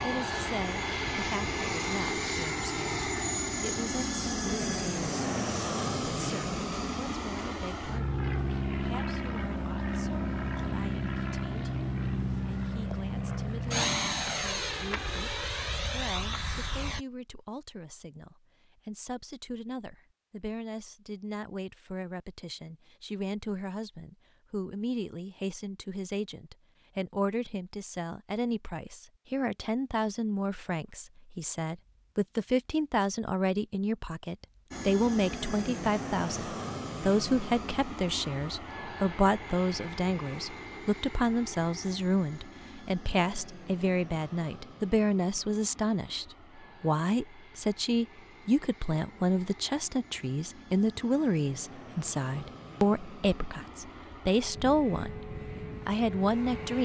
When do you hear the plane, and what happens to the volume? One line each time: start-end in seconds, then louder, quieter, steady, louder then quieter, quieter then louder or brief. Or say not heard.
0.0-17.1 steady
34.7-56.8 quieter then louder.